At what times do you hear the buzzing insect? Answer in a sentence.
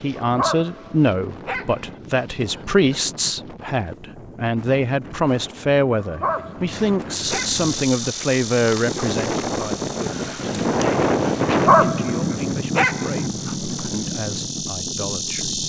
The buzzing insect can be heard from 7.2 to 15.6 s.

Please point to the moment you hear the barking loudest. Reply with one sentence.
The loudest moment of the barking is at 12 seconds.